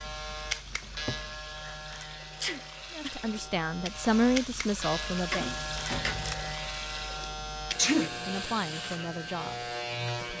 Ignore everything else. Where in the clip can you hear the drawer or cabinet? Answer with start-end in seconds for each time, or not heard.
0.8-1.4, 5.3-6.5.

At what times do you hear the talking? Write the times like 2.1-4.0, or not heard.
3.0-5.5, 8.1-10.3.